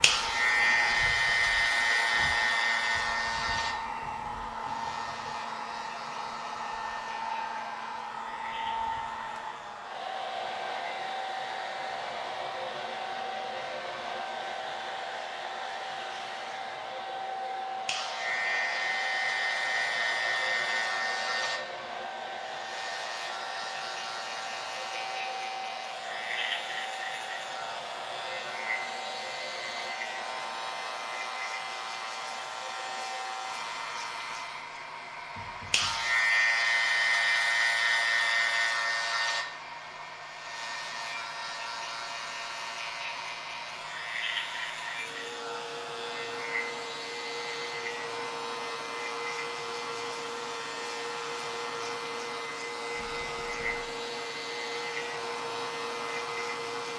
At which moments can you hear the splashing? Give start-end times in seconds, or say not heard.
not heard.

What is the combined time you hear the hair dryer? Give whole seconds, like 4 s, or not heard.
57 s.